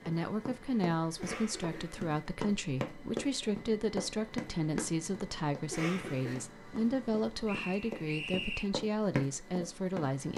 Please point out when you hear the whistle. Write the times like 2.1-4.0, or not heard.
7.5-8.7.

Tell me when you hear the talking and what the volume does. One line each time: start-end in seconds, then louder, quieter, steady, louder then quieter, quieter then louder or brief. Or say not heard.
0.1-10.3 steady.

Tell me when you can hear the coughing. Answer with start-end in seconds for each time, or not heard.
1.1-2.1, 5.7-6.5.